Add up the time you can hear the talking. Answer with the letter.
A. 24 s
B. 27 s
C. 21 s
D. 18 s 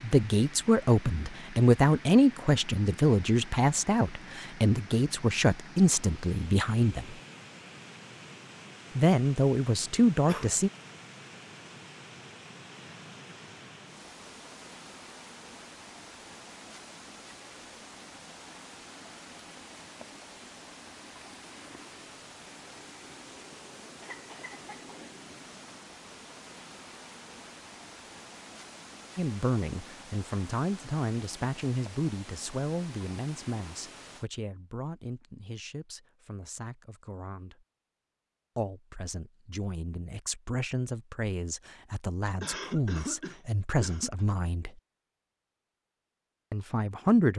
A.